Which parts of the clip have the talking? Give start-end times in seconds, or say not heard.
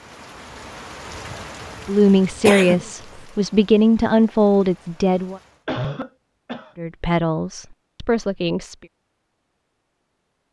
1.9-5.4, 6.8-8.8.